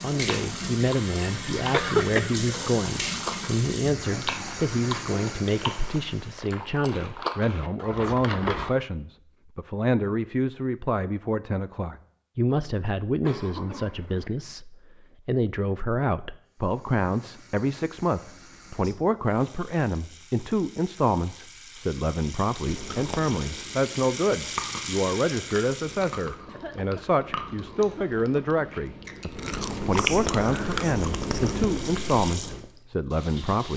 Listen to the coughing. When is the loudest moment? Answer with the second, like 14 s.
2 s.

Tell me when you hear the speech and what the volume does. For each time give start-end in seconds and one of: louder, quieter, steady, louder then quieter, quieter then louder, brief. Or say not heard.
0.0-33.7 steady.